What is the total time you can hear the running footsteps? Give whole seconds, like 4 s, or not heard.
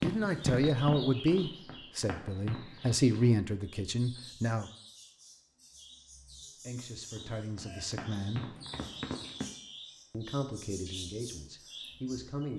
6 s.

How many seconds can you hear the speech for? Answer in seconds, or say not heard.
9 s.